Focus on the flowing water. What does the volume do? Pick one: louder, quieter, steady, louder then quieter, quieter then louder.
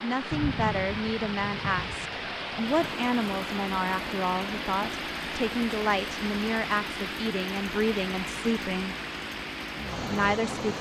steady.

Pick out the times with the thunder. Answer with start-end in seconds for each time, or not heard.
0.3-2.7.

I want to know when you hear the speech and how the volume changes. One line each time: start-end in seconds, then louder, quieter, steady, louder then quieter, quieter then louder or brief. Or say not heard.
0.0-8.9 steady
10.1-10.7 brief.